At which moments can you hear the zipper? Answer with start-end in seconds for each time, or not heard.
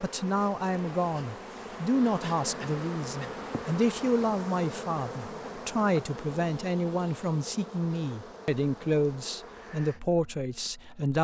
not heard.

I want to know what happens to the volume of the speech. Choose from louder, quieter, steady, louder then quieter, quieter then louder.
steady.